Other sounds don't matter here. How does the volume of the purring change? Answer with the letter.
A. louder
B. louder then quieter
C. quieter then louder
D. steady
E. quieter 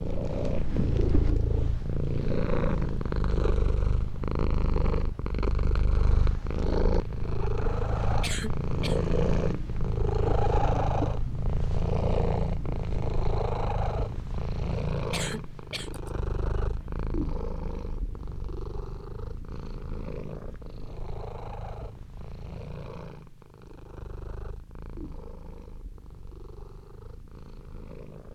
E.